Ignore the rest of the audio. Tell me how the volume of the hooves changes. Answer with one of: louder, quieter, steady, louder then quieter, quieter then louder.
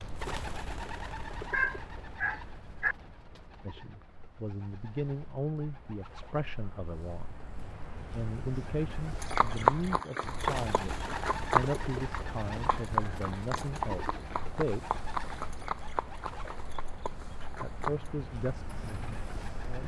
quieter.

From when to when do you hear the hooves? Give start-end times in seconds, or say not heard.
9.2-19.5.